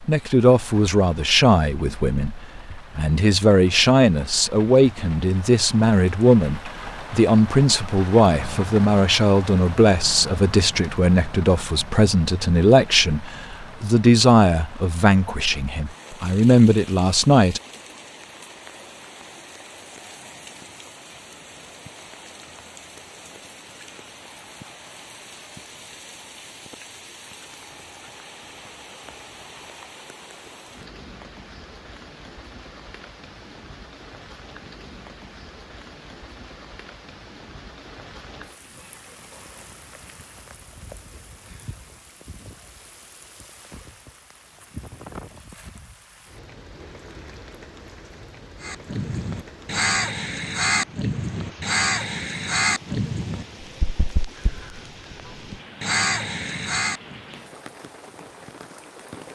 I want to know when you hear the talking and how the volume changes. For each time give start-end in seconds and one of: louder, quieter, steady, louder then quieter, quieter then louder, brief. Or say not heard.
0.0-17.6 steady.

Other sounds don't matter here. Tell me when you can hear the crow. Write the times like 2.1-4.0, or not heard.
48.6-57.2.